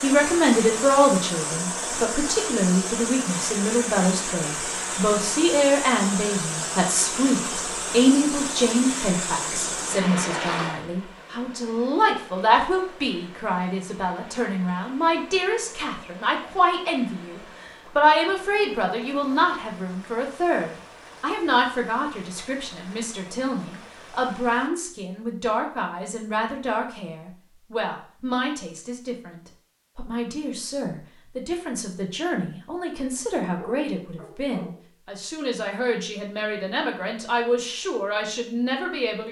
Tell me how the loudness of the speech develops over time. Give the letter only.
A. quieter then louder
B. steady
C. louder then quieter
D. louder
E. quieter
E.